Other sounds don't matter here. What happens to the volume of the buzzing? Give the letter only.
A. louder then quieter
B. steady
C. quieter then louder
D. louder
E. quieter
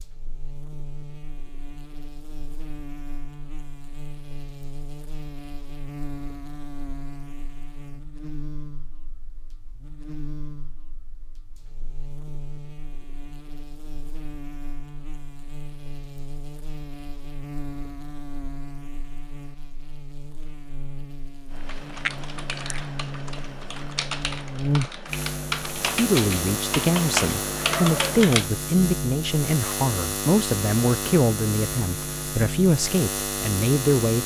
D.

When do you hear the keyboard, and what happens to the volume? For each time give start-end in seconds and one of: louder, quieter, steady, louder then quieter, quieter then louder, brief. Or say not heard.
21.5-28.4 louder.